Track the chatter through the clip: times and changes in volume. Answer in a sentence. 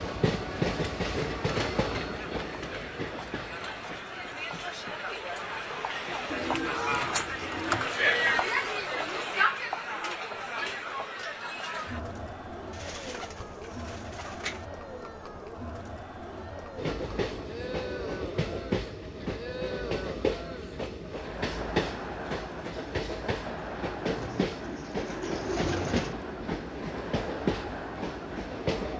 You can hear the chatter from 0.0 to 28.9 s, getting louder then quieter.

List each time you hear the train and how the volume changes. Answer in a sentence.
You can hear the train from 0.0 to 6.3 s, getting quieter; and from 16.8 to 28.9 s, at a steady volume.